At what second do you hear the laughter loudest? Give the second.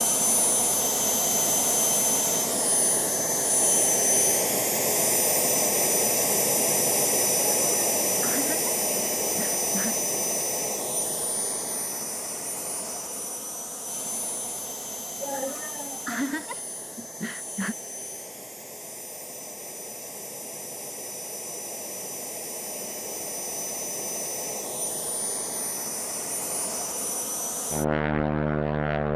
16 s.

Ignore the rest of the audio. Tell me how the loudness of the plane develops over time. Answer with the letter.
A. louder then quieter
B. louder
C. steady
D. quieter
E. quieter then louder
E.